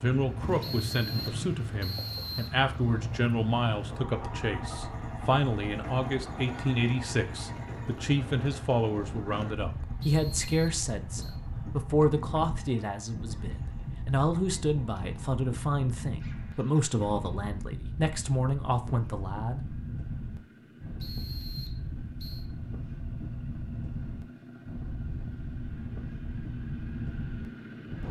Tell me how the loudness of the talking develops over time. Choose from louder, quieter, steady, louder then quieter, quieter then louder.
steady.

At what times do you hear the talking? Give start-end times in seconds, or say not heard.
0.0-19.8.